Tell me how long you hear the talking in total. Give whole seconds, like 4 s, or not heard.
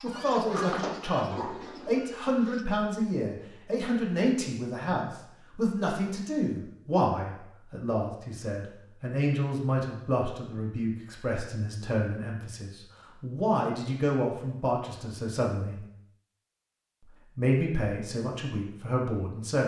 18 s.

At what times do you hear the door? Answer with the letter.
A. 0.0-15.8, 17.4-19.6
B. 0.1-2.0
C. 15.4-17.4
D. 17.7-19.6
B.